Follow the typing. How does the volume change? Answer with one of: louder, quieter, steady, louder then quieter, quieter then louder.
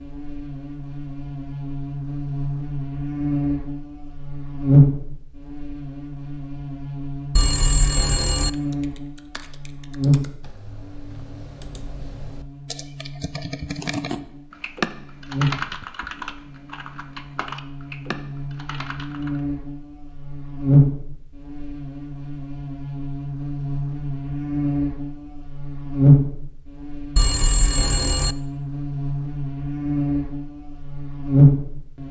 louder then quieter.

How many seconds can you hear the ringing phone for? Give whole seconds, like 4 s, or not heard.
2 s.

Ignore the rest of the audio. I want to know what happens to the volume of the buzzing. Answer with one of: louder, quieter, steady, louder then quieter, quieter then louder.
quieter then louder.